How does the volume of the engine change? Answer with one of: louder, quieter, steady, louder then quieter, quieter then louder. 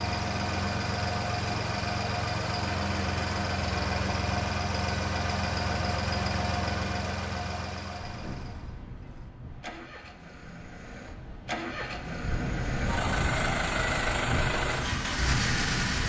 quieter then louder.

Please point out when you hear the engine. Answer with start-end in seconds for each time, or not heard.
0.0-16.0.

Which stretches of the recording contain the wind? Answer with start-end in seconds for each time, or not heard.
8.0-16.0.